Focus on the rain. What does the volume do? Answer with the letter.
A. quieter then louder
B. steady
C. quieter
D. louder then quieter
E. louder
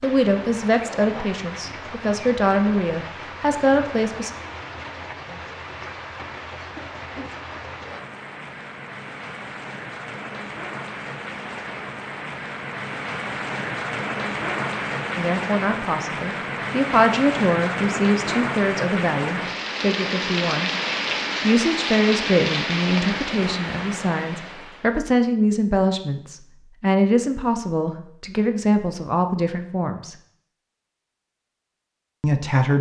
E.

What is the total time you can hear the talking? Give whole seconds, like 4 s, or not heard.
19 s.